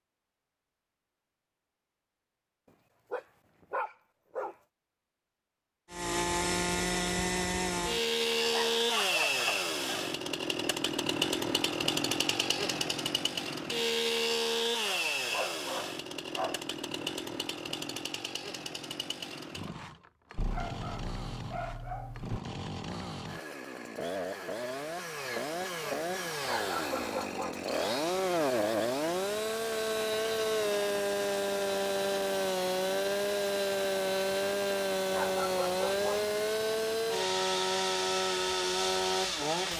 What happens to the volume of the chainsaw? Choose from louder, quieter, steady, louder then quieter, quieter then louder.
quieter then louder.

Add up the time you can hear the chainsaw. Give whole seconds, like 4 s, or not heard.
34 s.